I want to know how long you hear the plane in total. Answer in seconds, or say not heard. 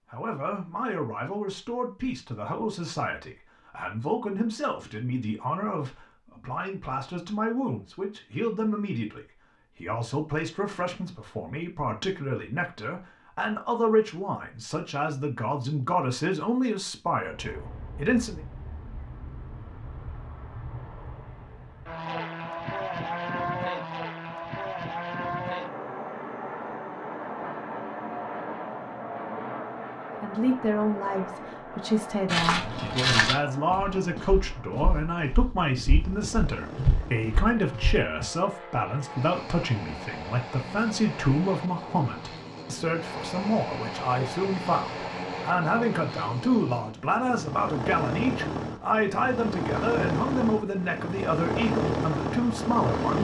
36 s.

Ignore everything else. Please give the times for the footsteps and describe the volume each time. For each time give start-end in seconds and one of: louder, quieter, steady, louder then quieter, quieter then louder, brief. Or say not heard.
32.2-38.2 quieter then louder.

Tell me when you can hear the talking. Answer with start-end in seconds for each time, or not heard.
0.1-18.4, 30.1-53.1.